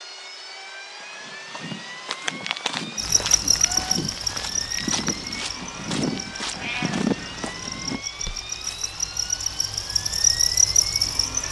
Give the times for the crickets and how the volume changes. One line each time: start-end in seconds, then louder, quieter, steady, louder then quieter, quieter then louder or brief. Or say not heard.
3.0-11.4 quieter then louder.